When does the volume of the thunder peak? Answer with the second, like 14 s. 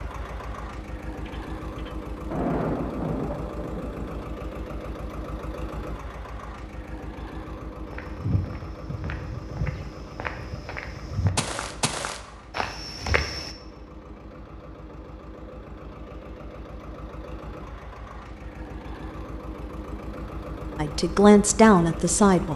3 s.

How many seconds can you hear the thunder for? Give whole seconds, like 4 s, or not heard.
3 s.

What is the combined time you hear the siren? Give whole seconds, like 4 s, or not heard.
not heard.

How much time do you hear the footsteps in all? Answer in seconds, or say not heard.
6 s.